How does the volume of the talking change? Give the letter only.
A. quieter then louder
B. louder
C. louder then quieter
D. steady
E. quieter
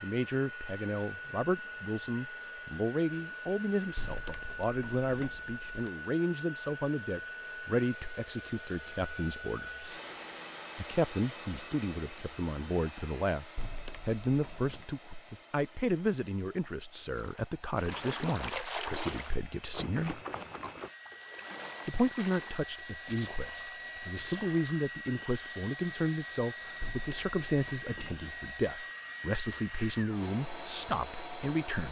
D.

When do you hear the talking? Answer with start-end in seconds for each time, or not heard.
0.0-10.0, 10.8-20.2, 21.9-31.8.